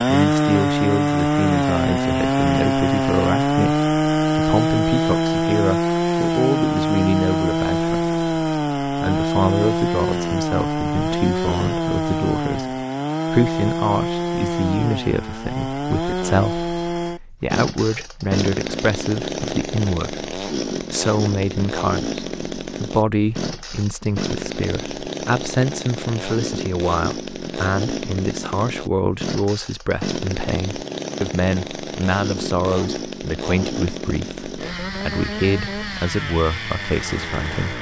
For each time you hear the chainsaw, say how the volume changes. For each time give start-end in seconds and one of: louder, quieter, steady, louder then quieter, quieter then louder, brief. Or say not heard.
0.0-37.7 quieter.